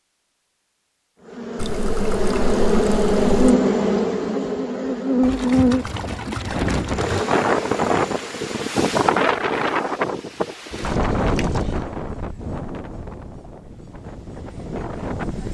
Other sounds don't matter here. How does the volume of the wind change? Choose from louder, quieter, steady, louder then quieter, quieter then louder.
quieter.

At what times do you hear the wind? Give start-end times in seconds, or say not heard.
6.5-15.4.